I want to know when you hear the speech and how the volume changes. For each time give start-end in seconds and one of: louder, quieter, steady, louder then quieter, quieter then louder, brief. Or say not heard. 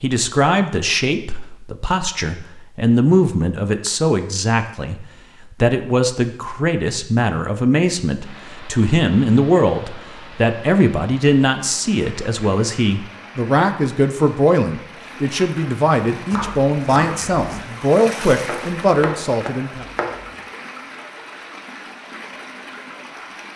0.0-19.9 steady.